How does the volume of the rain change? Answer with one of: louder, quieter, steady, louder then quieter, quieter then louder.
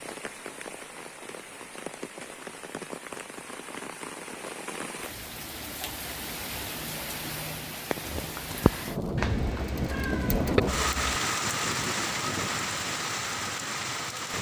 louder.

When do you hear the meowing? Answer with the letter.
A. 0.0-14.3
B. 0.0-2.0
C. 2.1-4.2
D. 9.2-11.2
D.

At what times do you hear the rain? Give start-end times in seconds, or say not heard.
0.0-14.3.